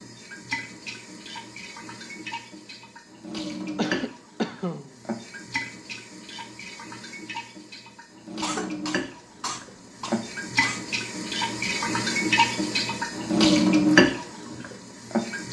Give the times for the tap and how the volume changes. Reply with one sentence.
You can hear the tap from 0.0 to 15.4 s, getting louder.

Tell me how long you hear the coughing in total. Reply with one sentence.
You can hear the coughing for 4 seconds altogether.